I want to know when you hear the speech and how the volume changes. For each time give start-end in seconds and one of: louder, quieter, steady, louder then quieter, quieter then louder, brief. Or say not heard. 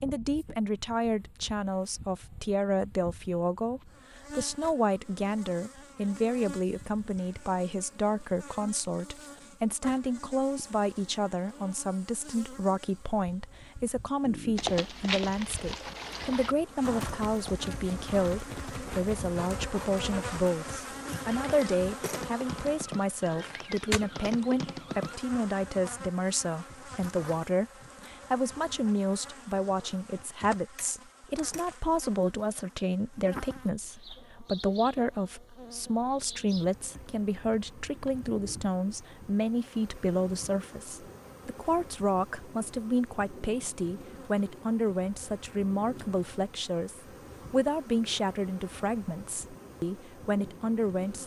0.0-51.2 steady.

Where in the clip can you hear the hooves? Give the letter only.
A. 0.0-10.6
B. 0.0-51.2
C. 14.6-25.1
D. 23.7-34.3
C.